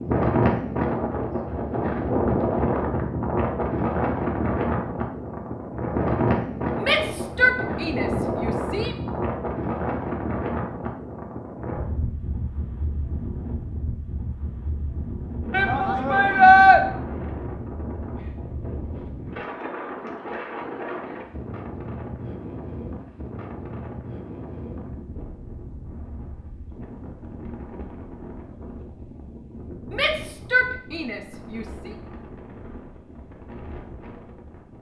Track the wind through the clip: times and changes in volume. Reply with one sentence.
You can hear the wind from 0.0 to 34.7 s, getting quieter.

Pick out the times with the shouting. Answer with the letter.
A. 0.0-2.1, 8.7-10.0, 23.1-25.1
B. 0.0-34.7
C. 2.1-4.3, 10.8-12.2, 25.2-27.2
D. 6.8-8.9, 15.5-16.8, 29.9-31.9
D.